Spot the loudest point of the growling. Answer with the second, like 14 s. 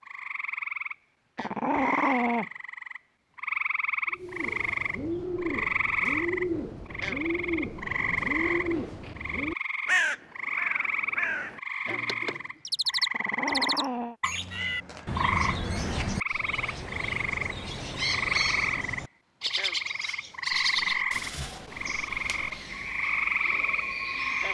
2 s.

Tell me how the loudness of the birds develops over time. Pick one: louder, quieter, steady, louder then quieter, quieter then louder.
steady.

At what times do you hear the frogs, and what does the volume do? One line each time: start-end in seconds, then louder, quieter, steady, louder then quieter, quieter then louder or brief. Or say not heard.
0.0-24.4 steady.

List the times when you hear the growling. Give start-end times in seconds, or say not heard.
1.4-2.5, 13.1-14.2, 20.5-22.6.